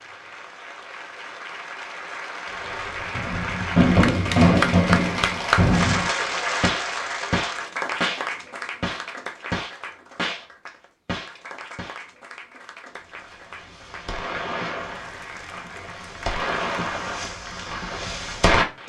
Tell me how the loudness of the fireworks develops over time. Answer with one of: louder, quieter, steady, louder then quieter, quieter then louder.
quieter then louder.